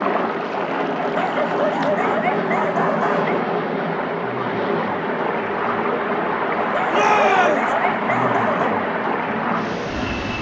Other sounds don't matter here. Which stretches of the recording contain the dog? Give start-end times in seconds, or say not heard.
0.9-3.5, 6.5-8.8.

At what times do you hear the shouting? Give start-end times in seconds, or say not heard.
6.9-7.8.